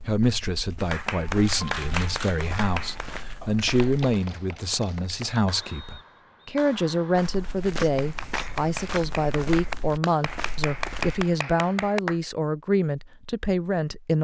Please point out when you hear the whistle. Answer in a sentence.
The whistle can be heard from 5.7 to 6.5 s.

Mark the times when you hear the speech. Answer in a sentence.
You can hear the speech from 0.1 to 14.1 s.